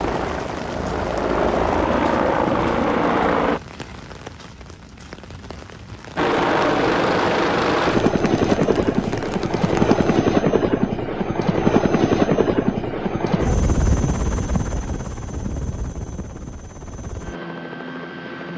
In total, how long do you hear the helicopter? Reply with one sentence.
The helicopter can be heard for 16 seconds in total.